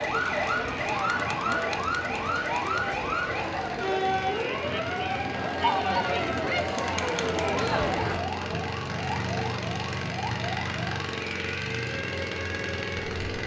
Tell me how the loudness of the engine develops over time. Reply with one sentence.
The volume of the engine goes up.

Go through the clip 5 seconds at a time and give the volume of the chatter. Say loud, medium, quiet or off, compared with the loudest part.
loud, loud, off.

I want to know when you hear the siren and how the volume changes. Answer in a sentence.
The siren can be heard from 0.0 to 13.4 s, getting quieter.